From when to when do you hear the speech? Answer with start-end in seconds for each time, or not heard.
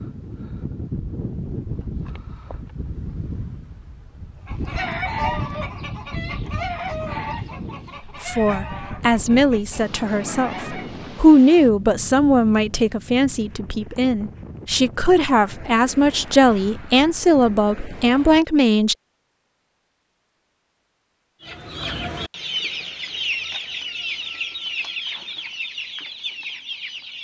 8.2-18.9.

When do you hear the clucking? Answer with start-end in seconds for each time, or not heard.
4.5-11.1, 21.4-27.1.